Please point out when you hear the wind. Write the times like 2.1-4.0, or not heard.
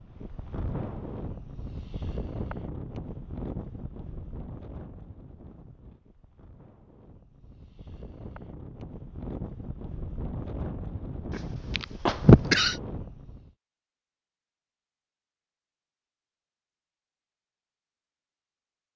0.0-13.5.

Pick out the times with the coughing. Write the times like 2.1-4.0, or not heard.
11.8-12.8.